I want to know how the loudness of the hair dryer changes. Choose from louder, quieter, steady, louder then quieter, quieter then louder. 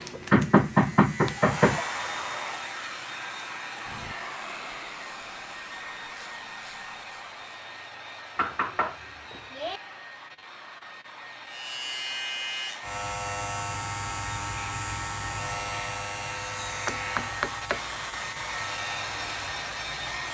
quieter then louder.